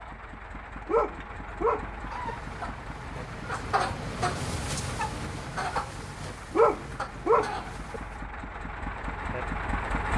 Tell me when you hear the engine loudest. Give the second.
10 s.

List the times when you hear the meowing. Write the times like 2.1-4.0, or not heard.
not heard.